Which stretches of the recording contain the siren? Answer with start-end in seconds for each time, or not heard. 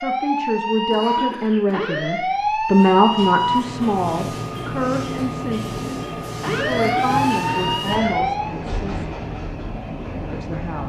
0.0-3.8, 6.4-8.6.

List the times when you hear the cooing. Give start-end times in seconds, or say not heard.
not heard.